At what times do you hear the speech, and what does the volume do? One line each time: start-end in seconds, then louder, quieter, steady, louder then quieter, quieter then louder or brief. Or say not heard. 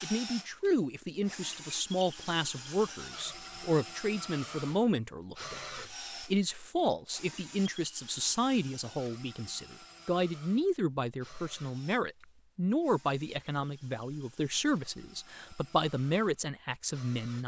0.0-17.4 steady.